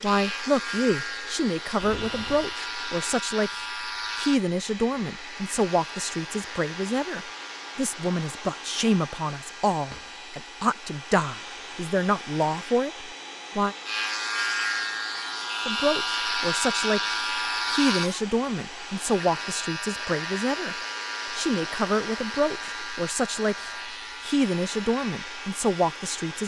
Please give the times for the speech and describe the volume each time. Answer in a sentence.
You can hear the speech from 0.0 to 13.8 s, at a steady volume; and from 15.7 to 26.4 s, at a steady volume.